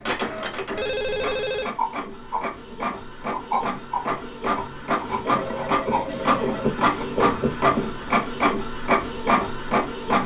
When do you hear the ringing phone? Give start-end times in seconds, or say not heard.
0.8-1.8, 5.2-6.8.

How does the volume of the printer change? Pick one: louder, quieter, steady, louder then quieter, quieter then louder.
louder.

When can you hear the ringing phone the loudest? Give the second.
1 s.